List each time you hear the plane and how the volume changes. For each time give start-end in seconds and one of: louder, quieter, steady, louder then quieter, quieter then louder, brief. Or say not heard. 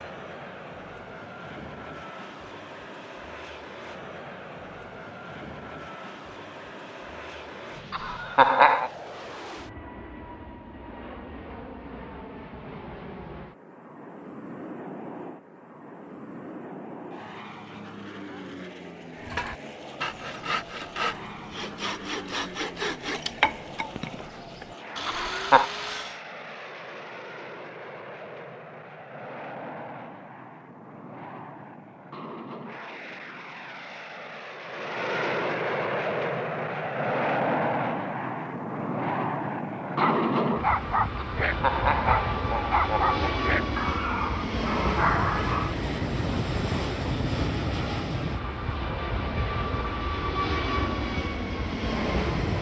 0.0-52.5 louder.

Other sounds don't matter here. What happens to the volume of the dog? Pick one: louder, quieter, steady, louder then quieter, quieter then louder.
steady.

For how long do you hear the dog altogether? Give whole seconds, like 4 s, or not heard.
6 s.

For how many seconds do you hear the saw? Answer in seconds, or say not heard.
7 s.